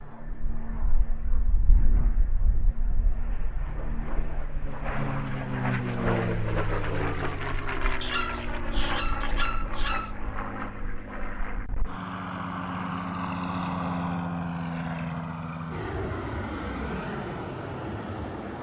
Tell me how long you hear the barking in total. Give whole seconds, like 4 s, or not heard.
2 s.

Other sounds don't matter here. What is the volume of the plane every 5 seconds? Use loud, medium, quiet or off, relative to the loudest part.
medium, loud, loud, loud.